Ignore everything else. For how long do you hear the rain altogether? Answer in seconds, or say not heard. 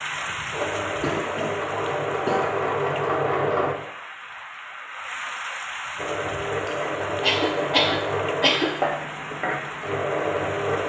11 s.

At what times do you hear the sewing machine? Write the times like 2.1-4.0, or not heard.
0.0-3.8, 6.0-10.8.